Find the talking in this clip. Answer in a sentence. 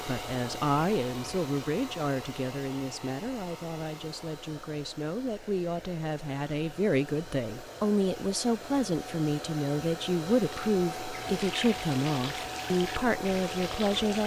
You can hear the talking from 0.0 to 14.2 s.